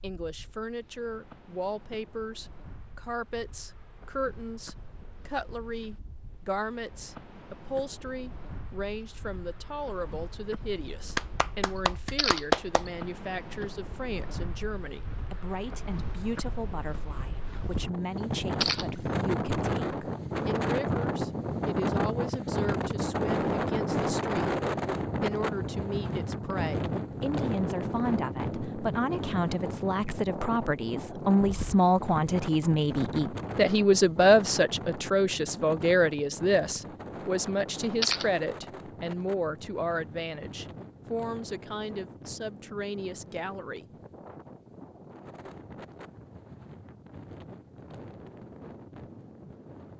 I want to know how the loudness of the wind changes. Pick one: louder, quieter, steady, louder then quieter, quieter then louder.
louder then quieter.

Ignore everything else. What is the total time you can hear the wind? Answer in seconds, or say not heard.
50 s.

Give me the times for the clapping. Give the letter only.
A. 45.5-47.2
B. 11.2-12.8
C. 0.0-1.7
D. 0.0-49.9
B.